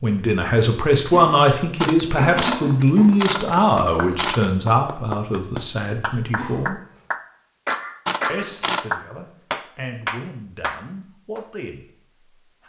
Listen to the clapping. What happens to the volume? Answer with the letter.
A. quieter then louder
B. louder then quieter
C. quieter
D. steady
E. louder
E.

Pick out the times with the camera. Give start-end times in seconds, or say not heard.
1.8-4.5, 8.1-8.8.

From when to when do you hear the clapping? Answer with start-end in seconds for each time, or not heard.
2.9-11.4.